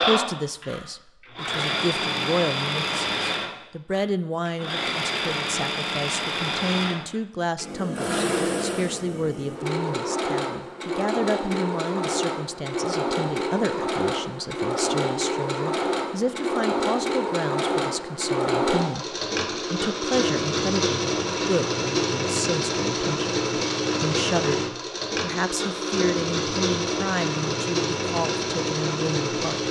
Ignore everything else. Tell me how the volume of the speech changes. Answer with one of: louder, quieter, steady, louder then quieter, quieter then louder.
steady.